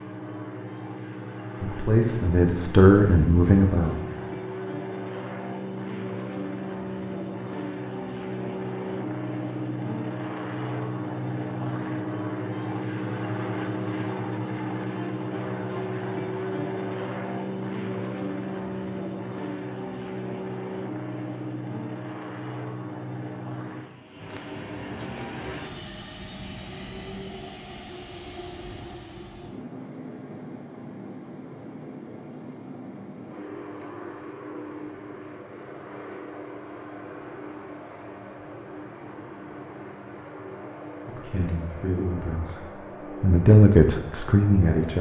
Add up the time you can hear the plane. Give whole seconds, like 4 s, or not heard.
45 s.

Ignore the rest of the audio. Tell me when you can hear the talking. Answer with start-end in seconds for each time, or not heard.
1.6-4.0, 41.0-44.9.